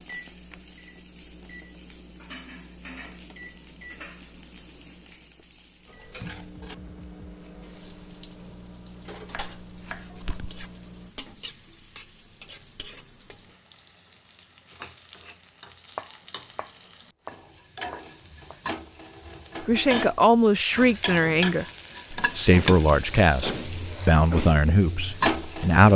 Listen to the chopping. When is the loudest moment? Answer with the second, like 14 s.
16 s.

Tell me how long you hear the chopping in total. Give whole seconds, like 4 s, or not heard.
4 s.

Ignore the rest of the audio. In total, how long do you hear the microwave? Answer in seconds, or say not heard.
11 s.